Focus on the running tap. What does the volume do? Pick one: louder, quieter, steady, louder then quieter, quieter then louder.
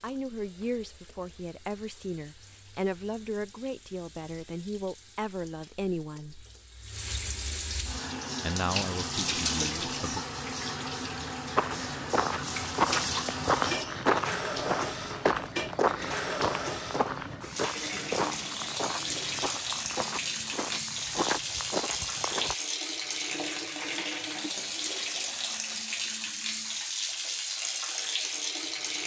louder.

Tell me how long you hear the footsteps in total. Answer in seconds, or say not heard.
11 s.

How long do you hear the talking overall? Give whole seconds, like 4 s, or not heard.
8 s.